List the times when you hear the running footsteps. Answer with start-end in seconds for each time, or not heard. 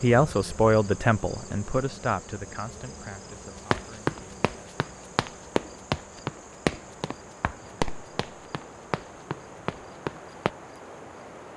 3.7-10.5.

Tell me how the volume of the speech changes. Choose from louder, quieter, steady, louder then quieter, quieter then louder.
quieter.